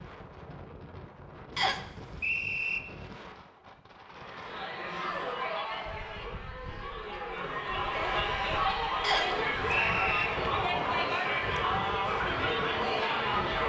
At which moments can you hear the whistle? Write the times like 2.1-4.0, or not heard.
1.6-2.8, 9.0-10.3.